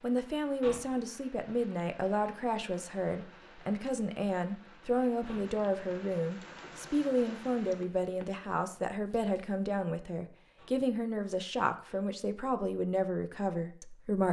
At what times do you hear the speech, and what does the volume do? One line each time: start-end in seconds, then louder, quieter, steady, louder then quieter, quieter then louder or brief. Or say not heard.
0.0-14.2 steady.